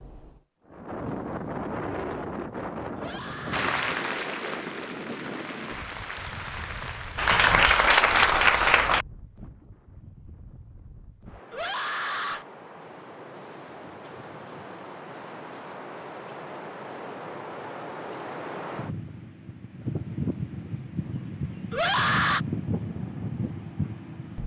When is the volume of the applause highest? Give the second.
8 s.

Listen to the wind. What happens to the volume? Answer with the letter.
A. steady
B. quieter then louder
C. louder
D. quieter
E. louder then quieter
B.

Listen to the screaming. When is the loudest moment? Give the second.
22 s.